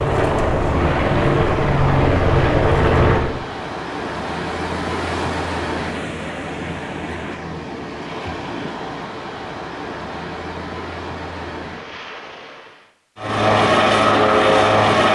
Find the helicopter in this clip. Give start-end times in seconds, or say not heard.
0.0-3.4, 13.2-15.1.